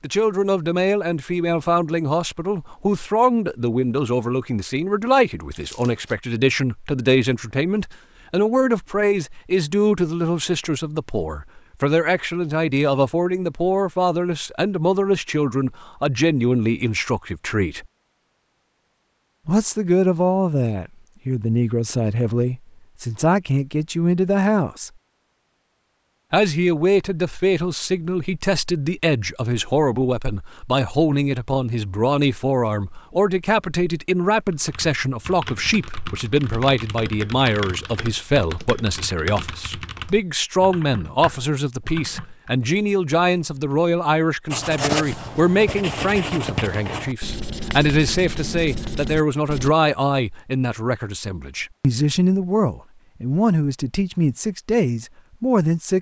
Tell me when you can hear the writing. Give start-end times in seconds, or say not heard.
44.5-49.8.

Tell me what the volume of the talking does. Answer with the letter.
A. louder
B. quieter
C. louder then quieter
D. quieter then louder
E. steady
E.